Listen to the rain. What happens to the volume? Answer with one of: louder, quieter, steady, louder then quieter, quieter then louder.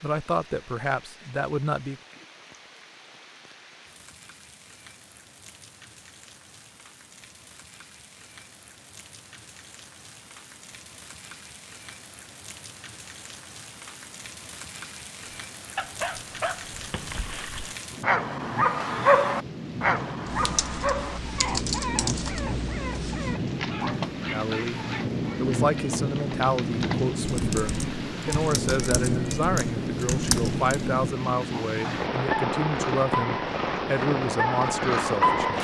louder.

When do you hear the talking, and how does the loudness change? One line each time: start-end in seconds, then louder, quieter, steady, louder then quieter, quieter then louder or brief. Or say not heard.
0.0-2.0 brief
24.3-35.5 steady.